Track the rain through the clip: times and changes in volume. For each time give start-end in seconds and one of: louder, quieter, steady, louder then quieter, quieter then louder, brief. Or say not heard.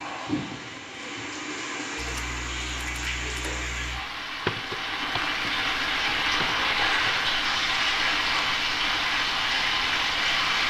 0.0-10.6 louder.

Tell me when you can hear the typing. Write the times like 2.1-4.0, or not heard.
1.9-7.2.